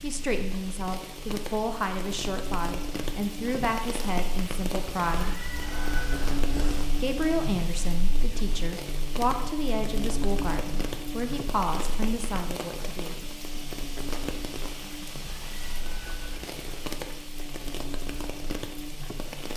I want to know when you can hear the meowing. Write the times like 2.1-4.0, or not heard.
5.1-6.9, 15.2-16.9.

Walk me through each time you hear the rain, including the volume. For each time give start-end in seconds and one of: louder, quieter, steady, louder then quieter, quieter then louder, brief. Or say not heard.
0.0-19.5 steady.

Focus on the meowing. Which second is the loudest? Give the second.
6 s.